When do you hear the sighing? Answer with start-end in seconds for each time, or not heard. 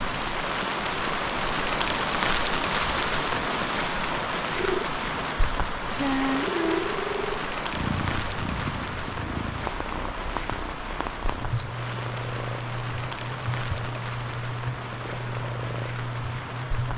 6.0-6.9.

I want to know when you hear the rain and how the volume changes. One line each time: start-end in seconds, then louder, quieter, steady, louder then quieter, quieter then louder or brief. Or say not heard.
0.0-16.9 quieter.